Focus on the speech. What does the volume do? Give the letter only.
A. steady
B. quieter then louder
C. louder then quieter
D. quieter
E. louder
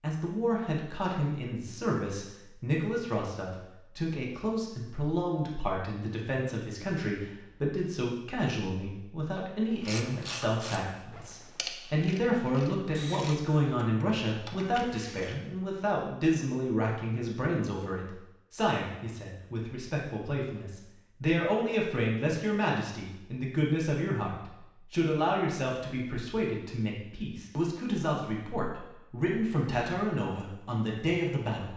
A.